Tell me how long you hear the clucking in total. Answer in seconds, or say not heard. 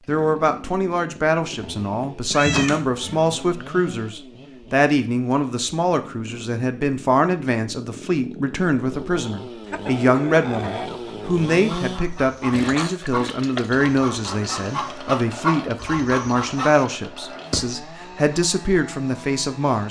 7 s.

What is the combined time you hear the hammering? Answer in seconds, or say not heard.
not heard.